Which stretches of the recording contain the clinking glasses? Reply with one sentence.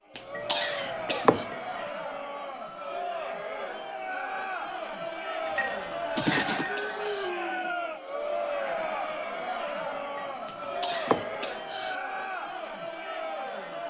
The clinking glasses can be heard from 0.3 to 1.8 s, from 5.5 to 6.8 s and from 10.9 to 11.7 s.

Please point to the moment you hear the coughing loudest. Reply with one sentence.
The volume of the coughing peaks at 1 second.